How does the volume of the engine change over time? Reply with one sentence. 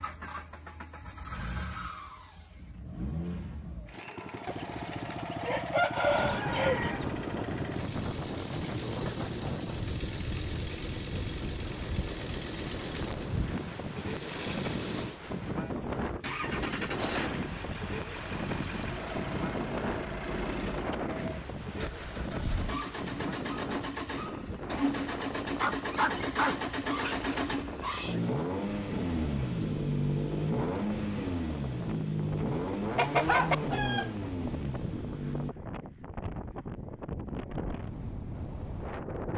The loudness of the engine goes up.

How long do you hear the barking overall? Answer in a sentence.
You can hear the barking for 2 seconds altogether.